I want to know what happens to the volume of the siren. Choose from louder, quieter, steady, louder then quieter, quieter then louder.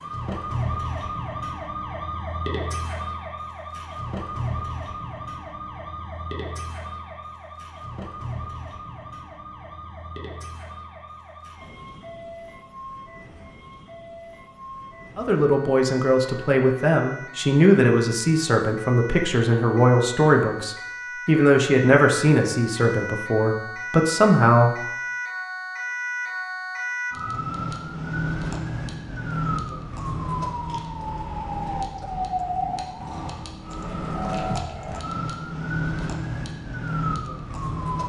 quieter then louder.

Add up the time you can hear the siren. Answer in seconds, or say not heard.
38 s.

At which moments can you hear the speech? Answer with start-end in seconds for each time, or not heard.
15.2-24.8.